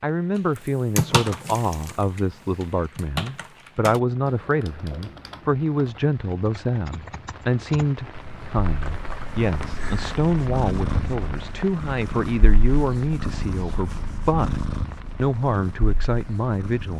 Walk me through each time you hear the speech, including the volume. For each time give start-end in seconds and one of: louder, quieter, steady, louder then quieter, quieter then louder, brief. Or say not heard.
0.0-16.9 steady.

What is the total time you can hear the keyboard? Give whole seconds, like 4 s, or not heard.
10 s.